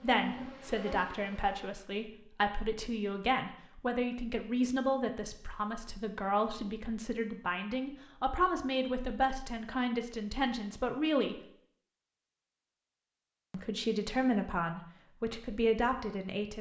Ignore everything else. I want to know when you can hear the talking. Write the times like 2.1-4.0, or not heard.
0.0-11.4, 13.5-16.5.